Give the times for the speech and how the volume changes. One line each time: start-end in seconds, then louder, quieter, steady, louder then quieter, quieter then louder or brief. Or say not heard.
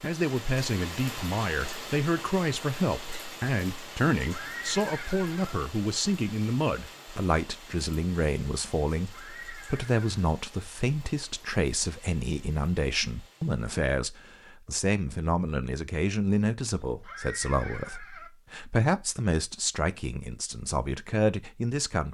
0.0-22.0 steady.